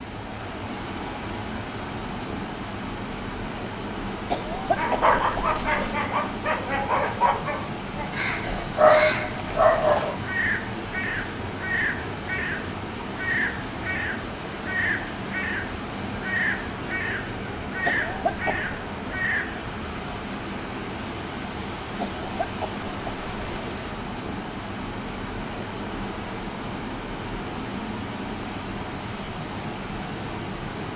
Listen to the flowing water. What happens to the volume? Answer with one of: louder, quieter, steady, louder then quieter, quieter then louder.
steady.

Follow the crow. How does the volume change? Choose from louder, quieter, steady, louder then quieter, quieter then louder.
steady.